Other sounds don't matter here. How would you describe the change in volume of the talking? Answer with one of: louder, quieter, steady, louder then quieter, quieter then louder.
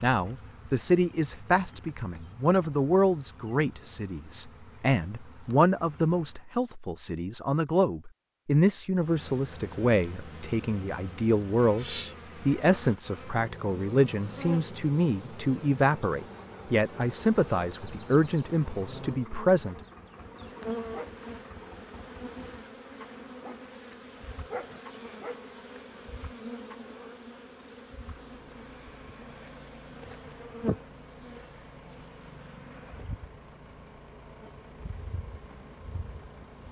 steady.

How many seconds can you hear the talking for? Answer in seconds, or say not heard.
20 s.